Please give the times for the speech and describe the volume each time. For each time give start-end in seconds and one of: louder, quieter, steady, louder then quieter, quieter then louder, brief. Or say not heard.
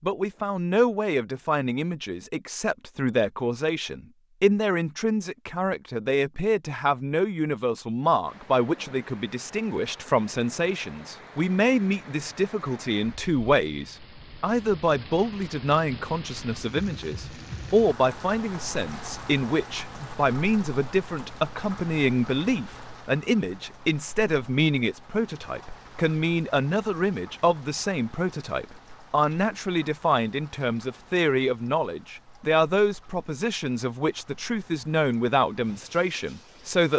0.0-36.9 steady.